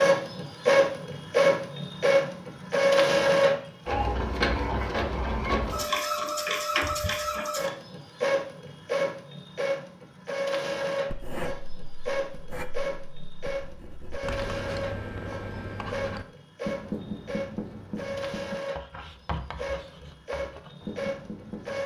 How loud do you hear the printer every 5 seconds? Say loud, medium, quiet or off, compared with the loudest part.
loud, medium, medium, quiet, quiet.